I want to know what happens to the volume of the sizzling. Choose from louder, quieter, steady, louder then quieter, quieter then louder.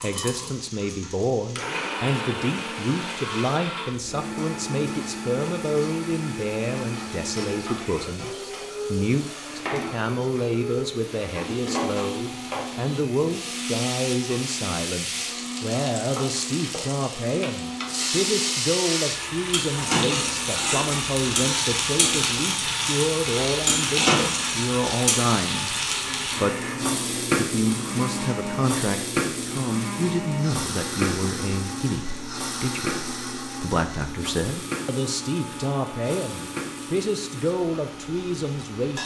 louder then quieter.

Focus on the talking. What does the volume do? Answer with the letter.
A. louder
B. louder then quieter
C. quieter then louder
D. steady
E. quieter
D.